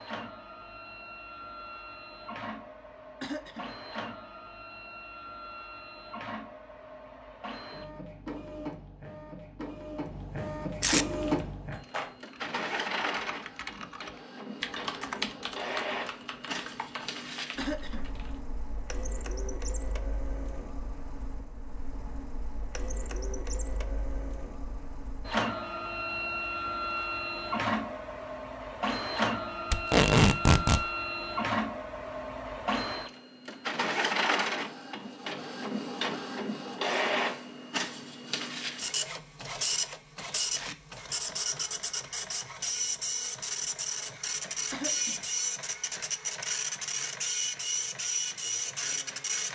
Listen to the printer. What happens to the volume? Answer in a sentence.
The loudness of the printer goes up.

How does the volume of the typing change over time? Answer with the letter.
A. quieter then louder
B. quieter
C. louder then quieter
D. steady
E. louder
C.